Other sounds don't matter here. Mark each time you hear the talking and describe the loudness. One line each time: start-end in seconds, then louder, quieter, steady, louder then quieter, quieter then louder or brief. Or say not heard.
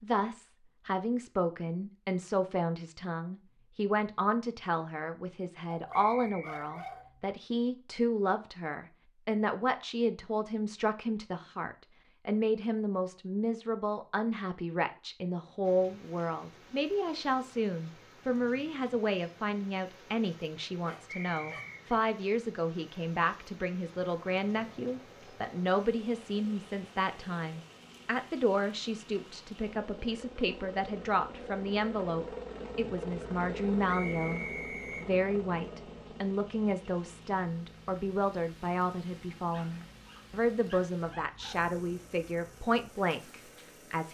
0.0-44.1 steady.